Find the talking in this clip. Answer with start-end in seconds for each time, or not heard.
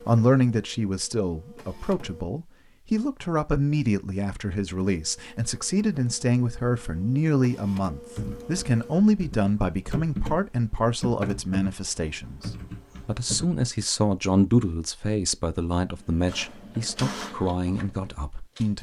0.1-18.7.